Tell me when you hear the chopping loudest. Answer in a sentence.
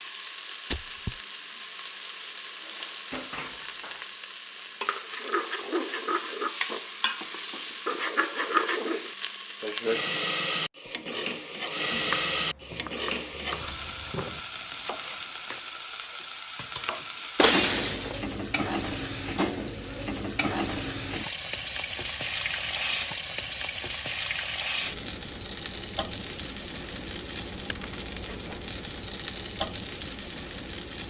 The volume of the chopping peaks at 12 seconds.